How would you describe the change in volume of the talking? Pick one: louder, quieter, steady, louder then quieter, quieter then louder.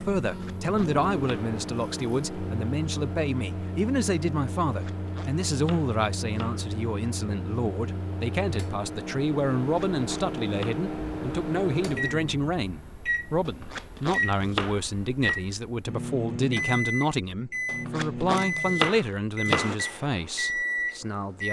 steady.